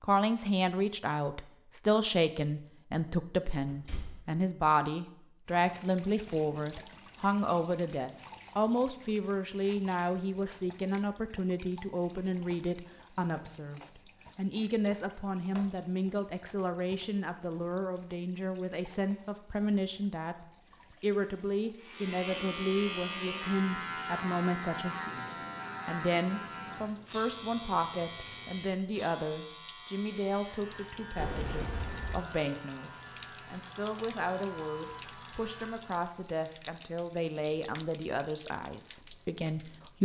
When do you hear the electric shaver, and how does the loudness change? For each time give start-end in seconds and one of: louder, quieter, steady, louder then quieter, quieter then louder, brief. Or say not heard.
21.8-36.1 quieter.